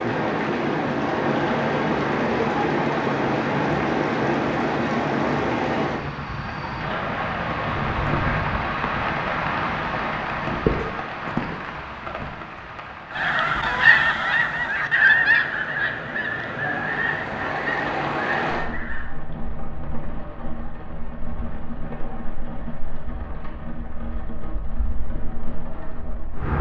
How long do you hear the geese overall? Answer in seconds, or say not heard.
6 s.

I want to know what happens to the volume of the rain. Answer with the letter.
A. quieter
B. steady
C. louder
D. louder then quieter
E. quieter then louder
A.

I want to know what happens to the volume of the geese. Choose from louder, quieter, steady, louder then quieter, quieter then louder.
quieter.